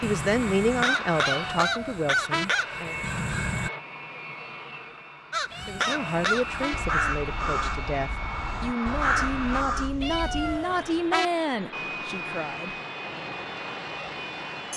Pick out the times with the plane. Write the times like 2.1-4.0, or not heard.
0.0-14.7.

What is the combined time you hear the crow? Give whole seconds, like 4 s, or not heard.
9 s.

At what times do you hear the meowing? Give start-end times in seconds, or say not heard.
1.2-2.5, 5.5-6.8, 10.0-11.2.